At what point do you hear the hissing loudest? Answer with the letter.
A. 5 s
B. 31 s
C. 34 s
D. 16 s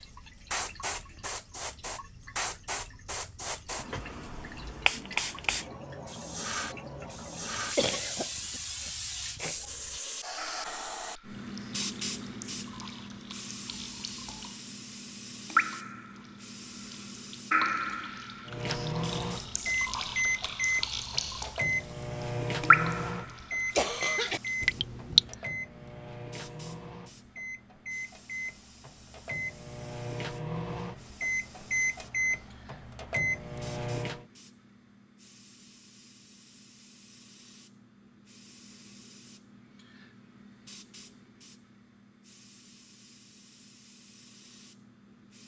A.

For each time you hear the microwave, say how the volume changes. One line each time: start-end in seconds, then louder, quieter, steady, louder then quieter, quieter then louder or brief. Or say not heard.
18.4-34.2 quieter then louder.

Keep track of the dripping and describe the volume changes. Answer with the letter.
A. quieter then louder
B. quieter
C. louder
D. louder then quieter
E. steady
C.